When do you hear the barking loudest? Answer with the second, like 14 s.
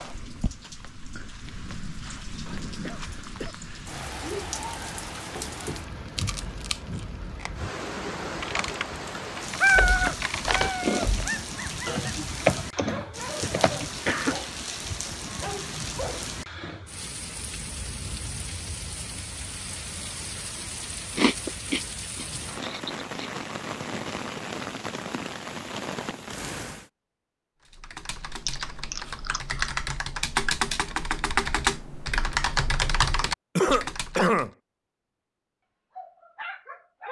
10 s.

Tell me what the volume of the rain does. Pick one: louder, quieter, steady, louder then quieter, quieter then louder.
steady.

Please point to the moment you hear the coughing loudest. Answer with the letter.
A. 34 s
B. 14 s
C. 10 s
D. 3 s
A.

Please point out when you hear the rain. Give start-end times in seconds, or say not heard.
0.0-26.9.